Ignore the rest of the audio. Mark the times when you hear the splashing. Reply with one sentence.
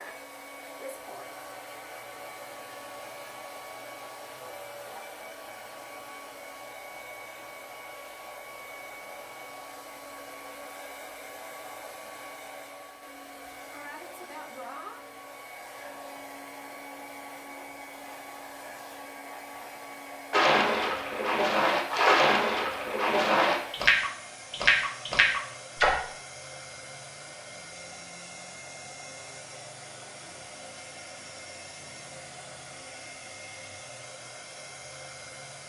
You can hear the splashing from 20.3 to 25.9 s.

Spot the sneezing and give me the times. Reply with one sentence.
You can't hear the sneezing here.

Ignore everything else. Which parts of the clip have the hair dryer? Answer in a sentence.
You can hear the hair dryer from 0.0 to 35.6 s.